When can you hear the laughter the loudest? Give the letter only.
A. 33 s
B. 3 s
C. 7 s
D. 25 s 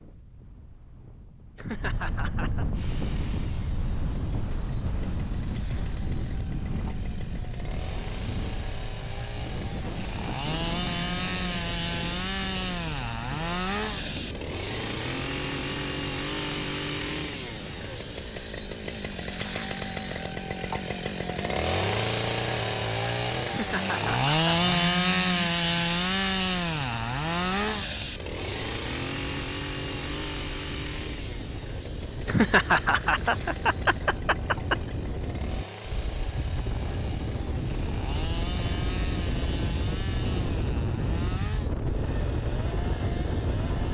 A.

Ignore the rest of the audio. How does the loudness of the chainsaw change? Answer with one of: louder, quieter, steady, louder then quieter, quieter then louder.
louder then quieter.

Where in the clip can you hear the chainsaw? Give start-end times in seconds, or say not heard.
2.7-43.8.